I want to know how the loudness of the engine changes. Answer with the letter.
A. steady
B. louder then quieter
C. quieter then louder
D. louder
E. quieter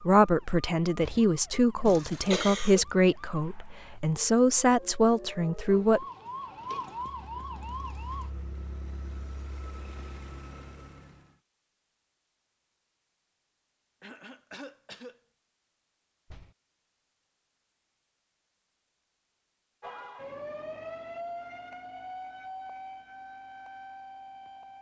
D.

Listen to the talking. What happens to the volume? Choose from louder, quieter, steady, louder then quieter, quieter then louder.
steady.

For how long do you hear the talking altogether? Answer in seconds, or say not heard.
6 s.